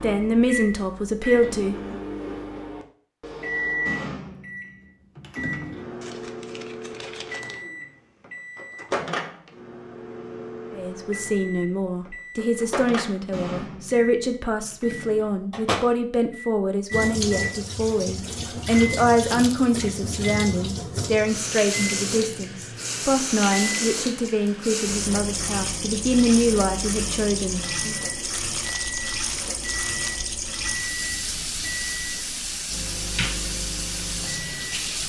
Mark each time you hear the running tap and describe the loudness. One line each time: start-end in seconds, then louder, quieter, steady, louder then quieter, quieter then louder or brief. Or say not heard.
16.9-35.0 steady.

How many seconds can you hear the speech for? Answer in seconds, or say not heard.
19 s.